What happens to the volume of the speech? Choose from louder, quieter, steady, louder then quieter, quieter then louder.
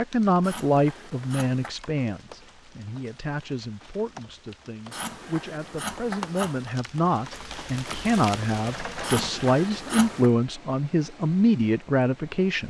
quieter then louder.